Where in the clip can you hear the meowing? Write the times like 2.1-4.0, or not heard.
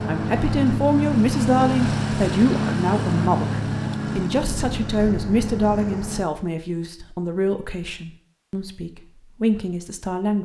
not heard.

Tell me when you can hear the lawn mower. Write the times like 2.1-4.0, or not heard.
0.0-6.2.